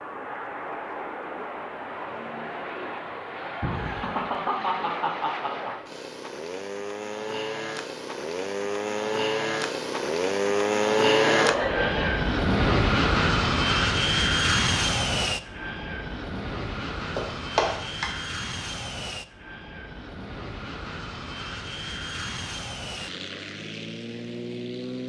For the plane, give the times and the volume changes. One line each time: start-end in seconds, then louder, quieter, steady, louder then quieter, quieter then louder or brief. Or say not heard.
0.0-25.0 louder then quieter.